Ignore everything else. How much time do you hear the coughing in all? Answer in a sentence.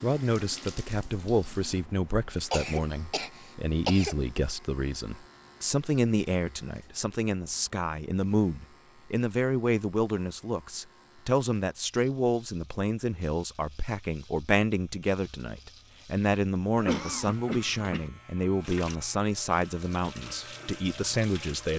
You can hear the coughing for 3 seconds altogether.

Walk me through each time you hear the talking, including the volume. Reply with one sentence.
The talking can be heard from 0.0 to 21.7 s, at a steady volume.